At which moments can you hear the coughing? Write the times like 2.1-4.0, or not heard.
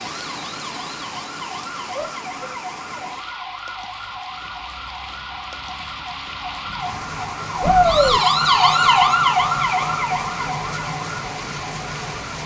not heard.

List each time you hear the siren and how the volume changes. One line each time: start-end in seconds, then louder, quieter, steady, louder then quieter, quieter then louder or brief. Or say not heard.
0.0-12.4 louder then quieter.